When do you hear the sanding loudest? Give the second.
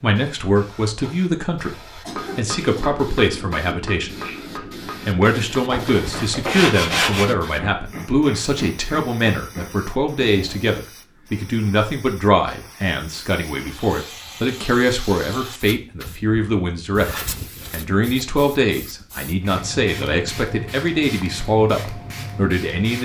7 s.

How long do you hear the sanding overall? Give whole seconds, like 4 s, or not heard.
2 s.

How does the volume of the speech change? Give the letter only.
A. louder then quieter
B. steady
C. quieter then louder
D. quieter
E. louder
B.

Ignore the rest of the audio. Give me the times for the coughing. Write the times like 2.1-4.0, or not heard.
2.0-2.9.